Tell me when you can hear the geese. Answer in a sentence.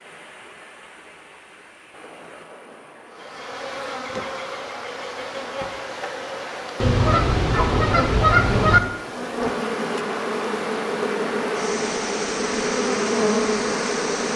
The geese can be heard from 6.8 to 8.8 s.